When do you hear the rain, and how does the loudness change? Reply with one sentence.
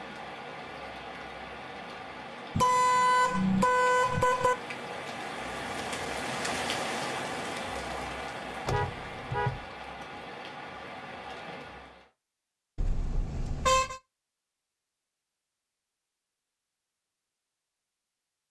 You can hear the rain from 0.0 to 12.1 s, getting louder then quieter.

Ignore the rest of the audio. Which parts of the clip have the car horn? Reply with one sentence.
The car horn can be heard from 2.5 to 4.5 s, from 8.7 to 9.7 s and from 12.8 to 14.0 s.